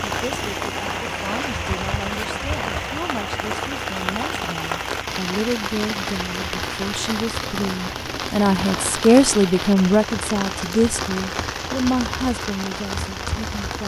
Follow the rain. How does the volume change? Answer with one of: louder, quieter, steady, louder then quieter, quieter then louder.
steady.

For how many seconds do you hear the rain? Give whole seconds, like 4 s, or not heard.
14 s.